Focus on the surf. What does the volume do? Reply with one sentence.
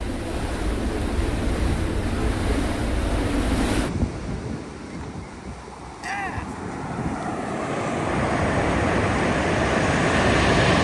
The loudness of the surf goes down, then up.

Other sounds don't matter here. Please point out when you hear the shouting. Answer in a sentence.
The shouting can be heard from 6.0 to 6.5 s.